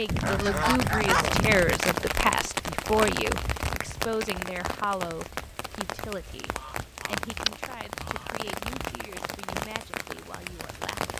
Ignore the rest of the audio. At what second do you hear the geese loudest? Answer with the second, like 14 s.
1 s.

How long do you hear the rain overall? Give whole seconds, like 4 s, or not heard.
11 s.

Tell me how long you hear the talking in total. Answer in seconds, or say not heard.
11 s.